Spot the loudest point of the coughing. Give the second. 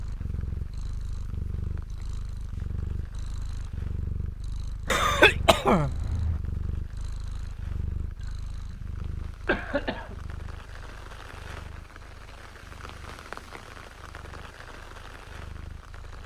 5 s.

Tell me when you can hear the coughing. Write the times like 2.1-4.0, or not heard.
4.8-6.4, 8.7-10.2.